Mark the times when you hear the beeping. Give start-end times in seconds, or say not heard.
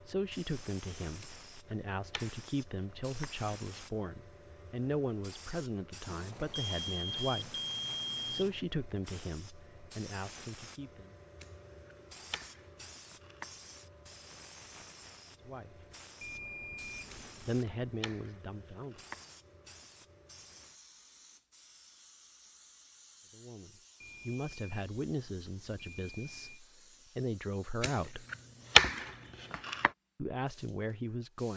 6.0-8.7, 16.2-17.9, 24.0-26.6.